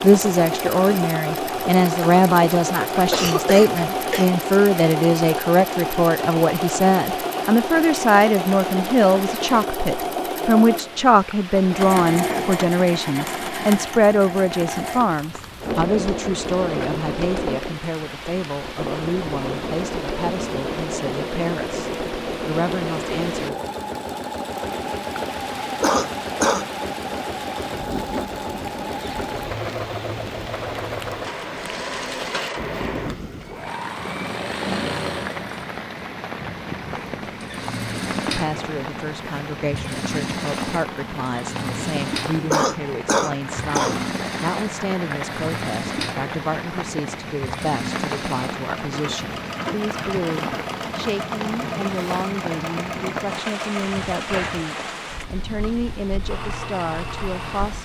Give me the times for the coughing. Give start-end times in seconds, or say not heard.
3.1-4.2, 25.8-26.6, 42.5-44.0.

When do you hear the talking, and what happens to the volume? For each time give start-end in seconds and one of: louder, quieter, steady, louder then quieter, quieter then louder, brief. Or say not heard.
0.0-23.6 quieter
38.4-57.8 steady.